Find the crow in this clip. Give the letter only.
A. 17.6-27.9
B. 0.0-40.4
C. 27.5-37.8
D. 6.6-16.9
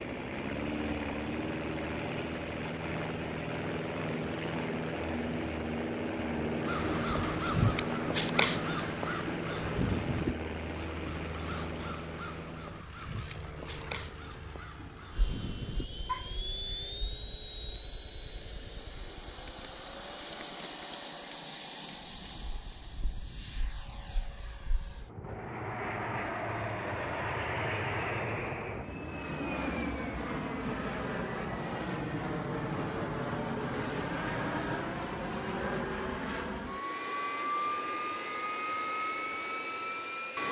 D.